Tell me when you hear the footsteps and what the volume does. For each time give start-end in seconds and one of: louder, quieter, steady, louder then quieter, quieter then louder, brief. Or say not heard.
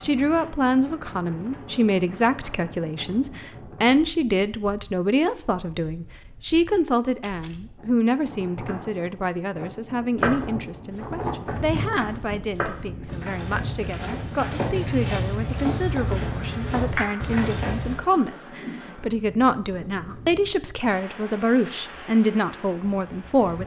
10.2-17.9 louder.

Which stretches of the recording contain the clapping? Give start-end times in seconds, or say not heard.
16.9-17.4.